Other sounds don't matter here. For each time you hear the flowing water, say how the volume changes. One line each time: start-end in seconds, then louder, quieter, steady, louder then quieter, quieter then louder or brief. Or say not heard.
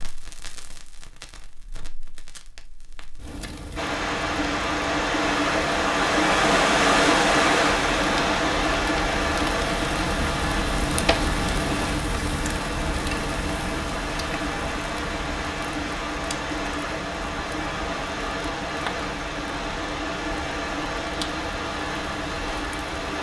3.8-23.1 quieter.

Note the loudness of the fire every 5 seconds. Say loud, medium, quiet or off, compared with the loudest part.
quiet, loud, loud, medium, medium.